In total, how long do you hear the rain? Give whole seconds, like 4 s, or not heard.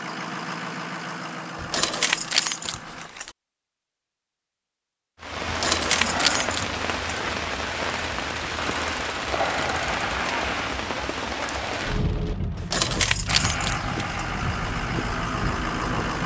11 s.